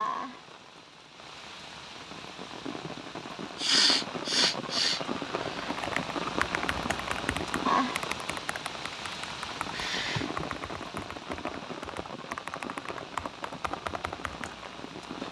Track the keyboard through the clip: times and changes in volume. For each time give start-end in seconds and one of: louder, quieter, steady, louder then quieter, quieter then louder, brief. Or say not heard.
5.6-14.8 steady.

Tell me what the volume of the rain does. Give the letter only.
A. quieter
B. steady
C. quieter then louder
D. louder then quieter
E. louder
D.